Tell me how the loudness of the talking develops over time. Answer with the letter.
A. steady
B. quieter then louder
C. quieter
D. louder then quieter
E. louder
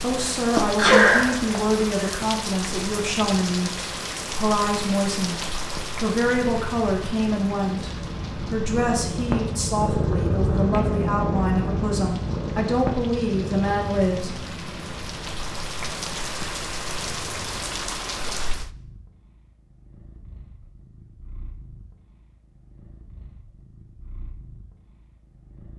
A.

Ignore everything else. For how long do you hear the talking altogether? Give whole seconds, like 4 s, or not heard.
14 s.